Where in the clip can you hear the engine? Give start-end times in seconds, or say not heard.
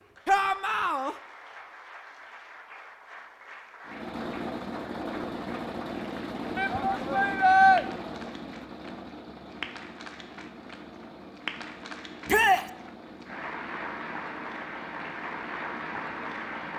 3.9-16.7.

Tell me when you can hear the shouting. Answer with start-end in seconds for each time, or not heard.
0.2-1.1, 6.5-7.8, 12.2-12.7.